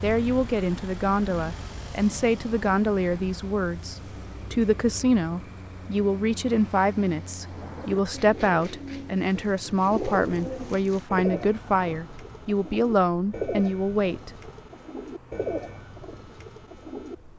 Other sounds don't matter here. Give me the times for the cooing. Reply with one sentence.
You can hear the cooing from 7.4 to 17.1 s.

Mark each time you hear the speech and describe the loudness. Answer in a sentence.
You can hear the speech from 0.0 to 14.3 s, at a steady volume.